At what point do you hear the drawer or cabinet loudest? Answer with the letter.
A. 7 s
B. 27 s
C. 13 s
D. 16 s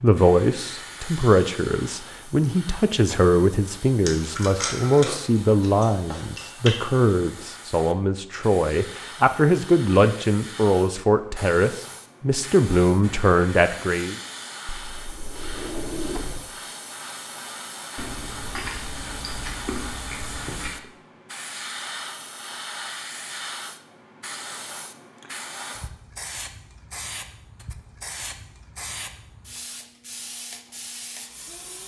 D.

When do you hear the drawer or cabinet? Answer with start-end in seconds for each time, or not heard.
14.7-16.5.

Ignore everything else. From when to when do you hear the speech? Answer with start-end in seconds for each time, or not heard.
0.0-14.2.